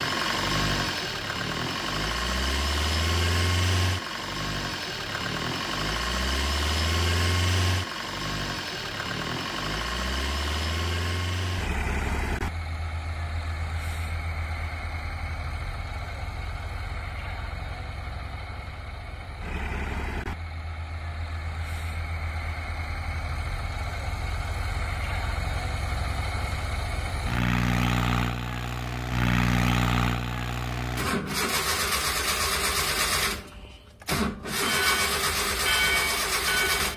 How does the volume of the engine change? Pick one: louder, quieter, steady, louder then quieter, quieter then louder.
quieter then louder.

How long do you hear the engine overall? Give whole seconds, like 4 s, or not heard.
37 s.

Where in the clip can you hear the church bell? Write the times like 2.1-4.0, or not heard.
34.6-36.9.